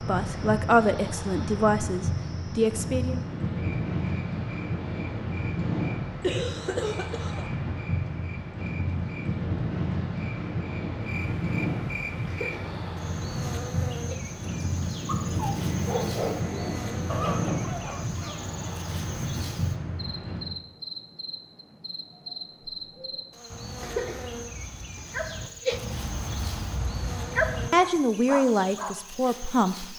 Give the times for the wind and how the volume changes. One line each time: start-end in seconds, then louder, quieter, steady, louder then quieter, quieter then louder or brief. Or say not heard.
0.0-20.6 steady.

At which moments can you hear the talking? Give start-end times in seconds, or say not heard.
0.0-3.2, 27.7-29.9.